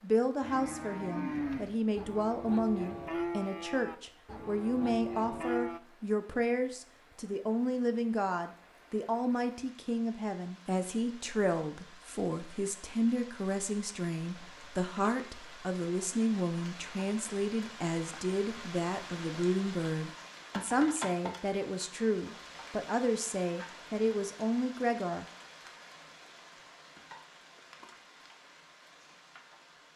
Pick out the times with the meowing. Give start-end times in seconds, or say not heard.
not heard.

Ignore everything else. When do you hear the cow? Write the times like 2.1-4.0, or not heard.
0.4-5.8.